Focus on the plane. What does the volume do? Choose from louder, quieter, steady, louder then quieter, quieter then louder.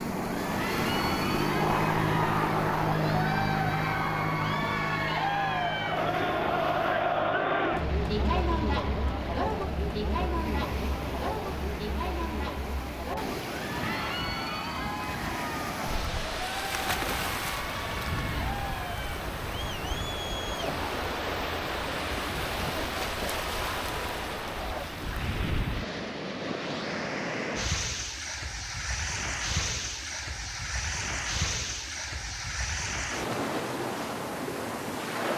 quieter.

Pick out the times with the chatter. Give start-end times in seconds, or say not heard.
0.3-24.9.